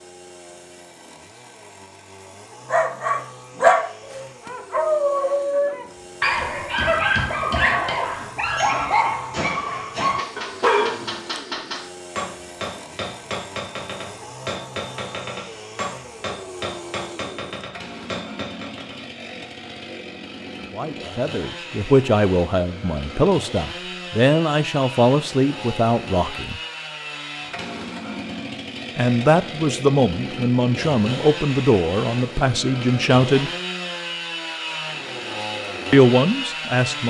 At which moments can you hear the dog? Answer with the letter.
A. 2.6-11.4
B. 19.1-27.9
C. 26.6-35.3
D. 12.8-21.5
A.